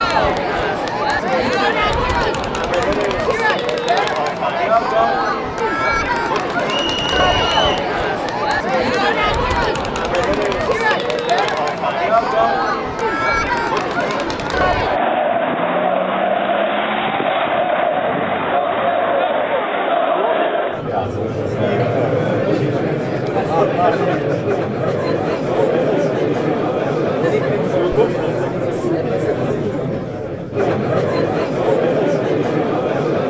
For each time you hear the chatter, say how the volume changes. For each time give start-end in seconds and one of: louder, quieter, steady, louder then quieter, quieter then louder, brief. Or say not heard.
0.0-33.2 steady.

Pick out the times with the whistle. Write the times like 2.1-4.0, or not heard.
6.7-7.9.